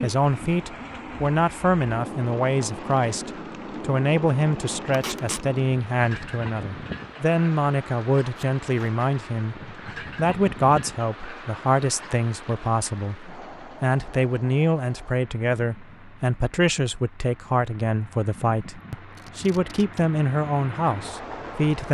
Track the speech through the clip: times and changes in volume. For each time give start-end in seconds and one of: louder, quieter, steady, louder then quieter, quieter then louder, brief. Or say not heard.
0.0-21.9 steady.